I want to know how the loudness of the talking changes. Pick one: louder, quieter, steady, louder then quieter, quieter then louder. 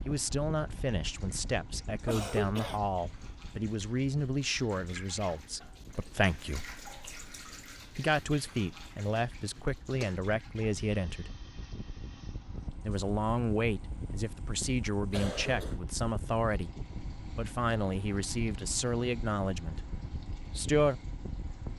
steady.